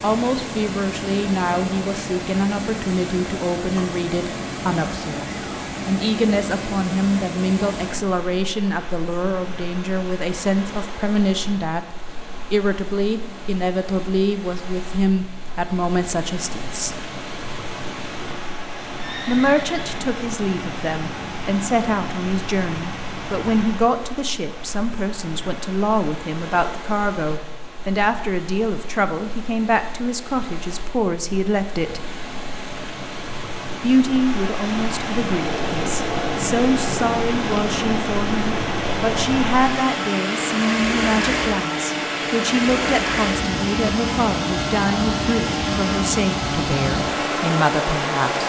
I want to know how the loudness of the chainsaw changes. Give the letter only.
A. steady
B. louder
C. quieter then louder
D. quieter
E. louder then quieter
A.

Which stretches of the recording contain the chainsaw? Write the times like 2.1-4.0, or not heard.
35.3-48.4.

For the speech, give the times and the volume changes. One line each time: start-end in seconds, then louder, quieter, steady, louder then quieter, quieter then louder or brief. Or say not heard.
0.0-16.9 steady
19.2-32.1 steady
33.8-48.4 steady.